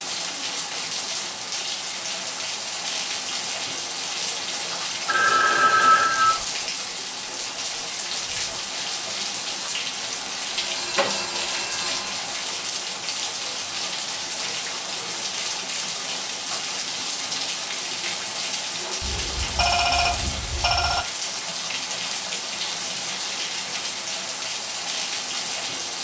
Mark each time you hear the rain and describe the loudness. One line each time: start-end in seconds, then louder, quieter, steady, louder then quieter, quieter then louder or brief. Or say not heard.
0.0-25.9 steady.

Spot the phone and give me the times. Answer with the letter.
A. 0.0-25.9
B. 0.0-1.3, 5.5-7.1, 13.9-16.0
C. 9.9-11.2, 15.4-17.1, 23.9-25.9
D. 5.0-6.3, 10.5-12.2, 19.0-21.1
D.